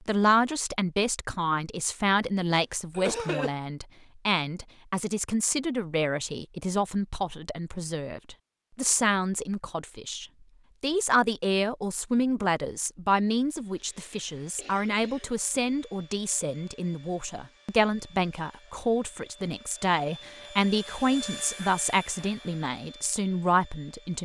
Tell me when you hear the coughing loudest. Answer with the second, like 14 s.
3 s.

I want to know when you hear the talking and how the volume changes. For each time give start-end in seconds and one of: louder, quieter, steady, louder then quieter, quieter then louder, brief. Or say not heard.
0.1-24.2 steady.